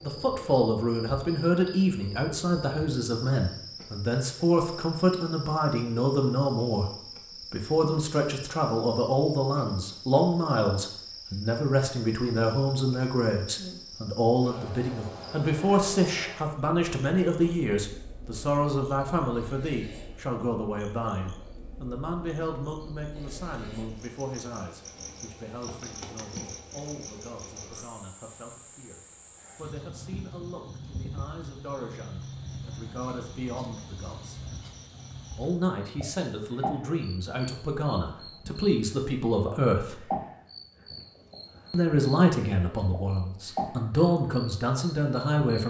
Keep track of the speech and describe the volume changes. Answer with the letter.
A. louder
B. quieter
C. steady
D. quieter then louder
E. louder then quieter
D.